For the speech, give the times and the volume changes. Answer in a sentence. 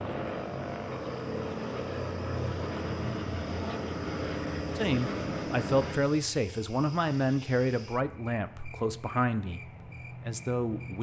You can hear the speech from 4.8 to 10.9 s, getting quieter.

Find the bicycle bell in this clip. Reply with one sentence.
You can't hear the bicycle bell here.